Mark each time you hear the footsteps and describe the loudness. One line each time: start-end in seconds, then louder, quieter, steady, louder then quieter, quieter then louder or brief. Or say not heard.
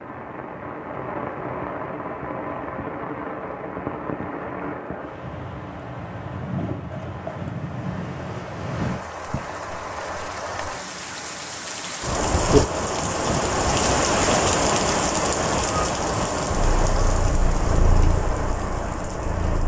not heard.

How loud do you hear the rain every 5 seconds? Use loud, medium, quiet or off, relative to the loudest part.
medium, medium, loud, loud.